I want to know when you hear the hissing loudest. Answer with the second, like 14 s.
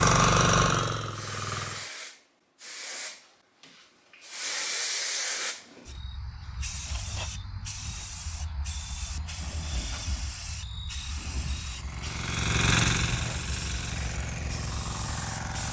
5 s.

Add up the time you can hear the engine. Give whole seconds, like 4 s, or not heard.
6 s.